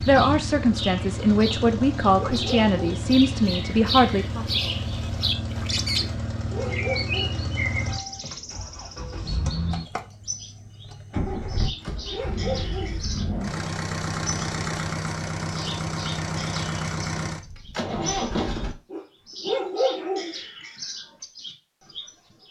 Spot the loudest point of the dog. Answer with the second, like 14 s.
20 s.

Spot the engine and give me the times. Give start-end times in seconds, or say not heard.
0.0-18.8.